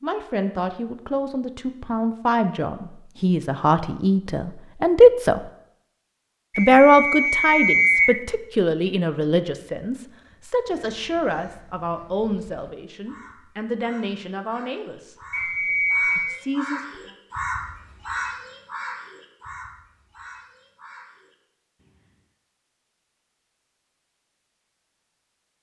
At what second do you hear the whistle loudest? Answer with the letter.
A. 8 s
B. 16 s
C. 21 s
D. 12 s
A.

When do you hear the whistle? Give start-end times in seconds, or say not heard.
6.5-8.2, 15.3-16.4.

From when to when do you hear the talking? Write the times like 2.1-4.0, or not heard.
0.0-5.4, 6.5-15.2, 16.1-17.1.